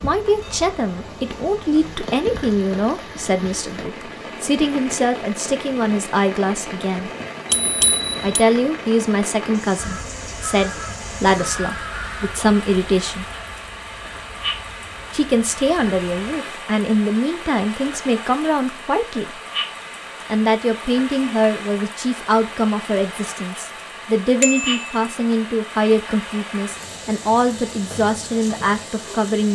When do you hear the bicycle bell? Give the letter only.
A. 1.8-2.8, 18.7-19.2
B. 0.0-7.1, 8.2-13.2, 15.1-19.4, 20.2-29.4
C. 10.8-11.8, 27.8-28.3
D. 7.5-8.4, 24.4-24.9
D.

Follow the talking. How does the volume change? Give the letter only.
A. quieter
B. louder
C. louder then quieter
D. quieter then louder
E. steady
E.